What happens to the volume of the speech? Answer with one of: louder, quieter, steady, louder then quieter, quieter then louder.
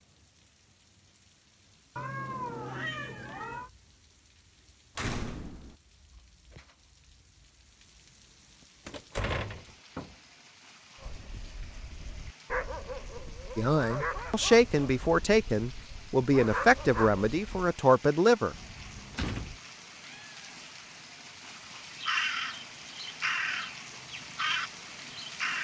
steady.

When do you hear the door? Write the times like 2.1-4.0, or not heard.
5.0-5.8, 8.8-9.8, 18.5-19.6.